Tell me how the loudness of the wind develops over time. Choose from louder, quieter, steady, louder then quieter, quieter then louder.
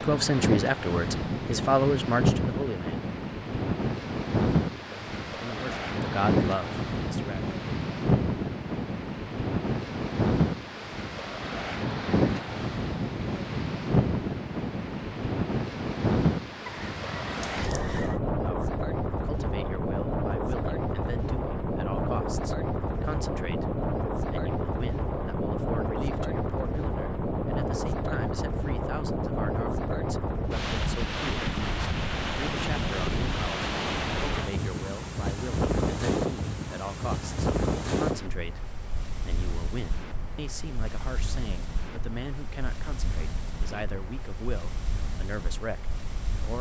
quieter.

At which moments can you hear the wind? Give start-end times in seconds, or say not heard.
0.0-46.5.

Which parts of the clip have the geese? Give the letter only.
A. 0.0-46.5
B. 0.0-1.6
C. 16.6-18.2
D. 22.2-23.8
C.